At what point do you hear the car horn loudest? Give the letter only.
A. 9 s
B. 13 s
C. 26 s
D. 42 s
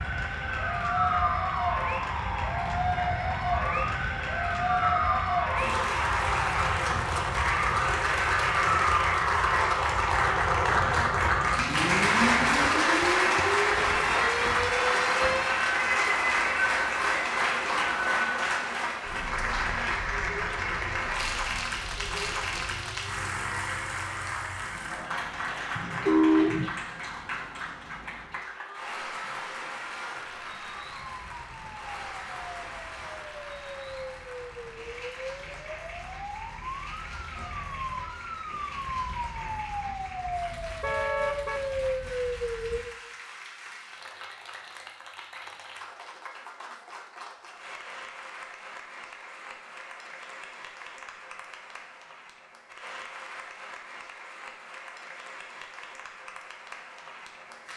C.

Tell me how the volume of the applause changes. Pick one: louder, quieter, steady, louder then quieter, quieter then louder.
quieter.